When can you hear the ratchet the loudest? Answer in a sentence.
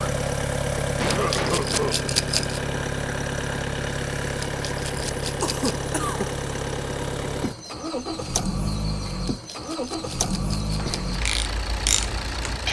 The loudest moment of the ratchet is at 12 seconds.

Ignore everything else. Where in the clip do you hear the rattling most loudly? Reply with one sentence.
The volume of the rattling peaks at 2 seconds.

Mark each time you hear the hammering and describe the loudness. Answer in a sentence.
You can't hear the hammering here.